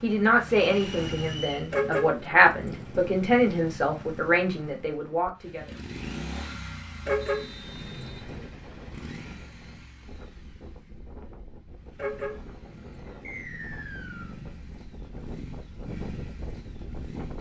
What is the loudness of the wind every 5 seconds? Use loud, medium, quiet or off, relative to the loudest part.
off, medium, medium, loud.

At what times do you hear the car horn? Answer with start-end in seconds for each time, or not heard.
1.7-3.1, 7.0-8.5, 11.9-13.4.